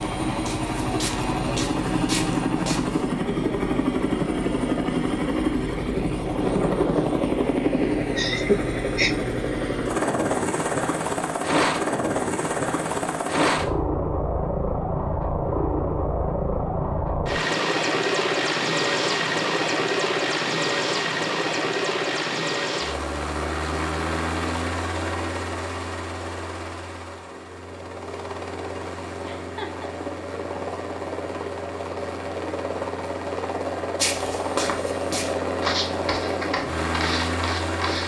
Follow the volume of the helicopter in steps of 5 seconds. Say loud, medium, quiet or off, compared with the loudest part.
loud, loud, loud, loud, loud, medium, medium, loud.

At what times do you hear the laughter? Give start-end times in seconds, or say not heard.
8.2-9.2, 29.2-29.9.